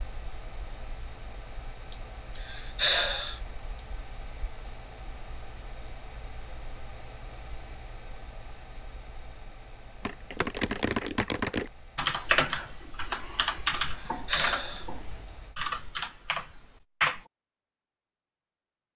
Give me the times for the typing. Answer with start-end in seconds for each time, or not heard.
10.1-17.2.